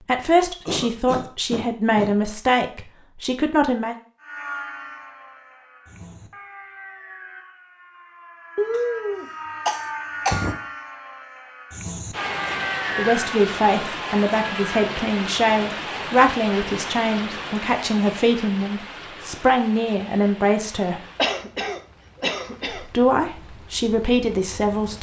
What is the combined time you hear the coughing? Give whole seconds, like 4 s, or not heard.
5 s.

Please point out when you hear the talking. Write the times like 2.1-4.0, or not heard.
0.1-4.0, 12.9-21.0, 22.8-24.9.